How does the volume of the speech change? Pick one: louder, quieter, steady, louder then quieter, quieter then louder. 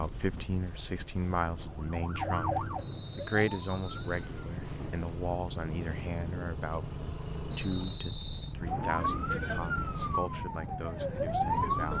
quieter.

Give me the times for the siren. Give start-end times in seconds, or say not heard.
1.6-4.2, 8.8-11.9.